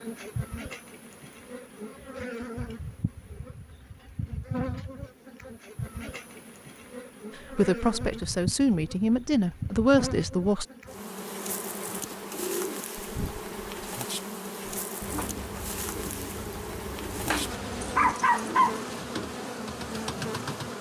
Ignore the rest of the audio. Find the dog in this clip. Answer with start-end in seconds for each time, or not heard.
17.3-18.9.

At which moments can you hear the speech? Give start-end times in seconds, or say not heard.
7.3-10.7.